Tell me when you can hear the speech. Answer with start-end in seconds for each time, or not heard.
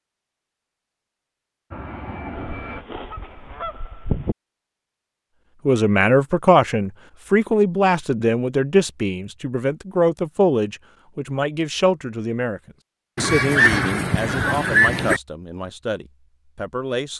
5.7-17.1.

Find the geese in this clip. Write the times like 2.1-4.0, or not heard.
2.4-4.3, 13.2-15.2.